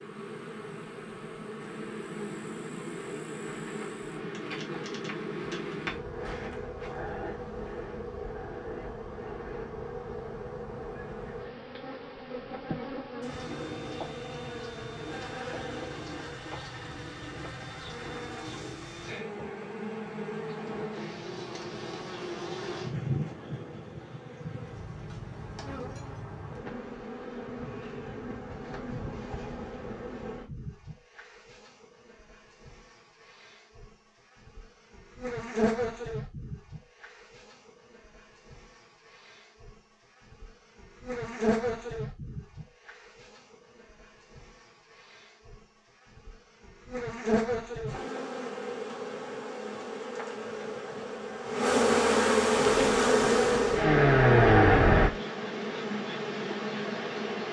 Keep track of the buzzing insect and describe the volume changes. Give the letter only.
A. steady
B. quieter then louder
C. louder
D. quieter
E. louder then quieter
C.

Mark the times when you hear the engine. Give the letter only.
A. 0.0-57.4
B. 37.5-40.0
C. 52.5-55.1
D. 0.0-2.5
C.